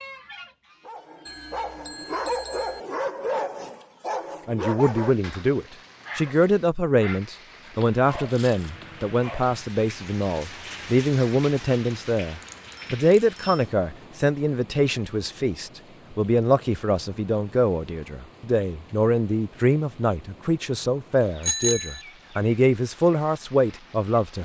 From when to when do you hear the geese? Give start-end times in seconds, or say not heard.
0.0-1.8.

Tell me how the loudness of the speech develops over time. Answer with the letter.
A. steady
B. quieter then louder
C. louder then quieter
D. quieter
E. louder
A.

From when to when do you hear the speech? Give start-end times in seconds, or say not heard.
4.5-24.3.